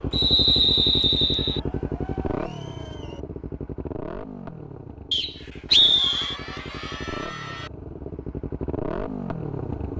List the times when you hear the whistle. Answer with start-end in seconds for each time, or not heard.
0.1-1.6, 5.1-6.3.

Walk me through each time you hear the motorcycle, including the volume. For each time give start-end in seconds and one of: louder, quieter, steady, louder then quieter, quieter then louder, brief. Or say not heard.
0.0-9.9 quieter then louder.